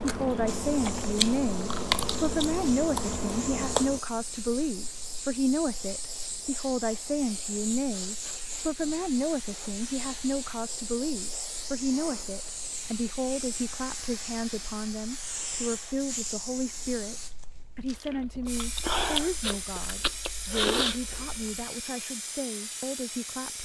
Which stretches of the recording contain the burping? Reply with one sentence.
You can't hear the burping here.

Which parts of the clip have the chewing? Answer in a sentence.
You can hear the chewing from 0.0 to 4.0 s and from 18.0 to 21.6 s.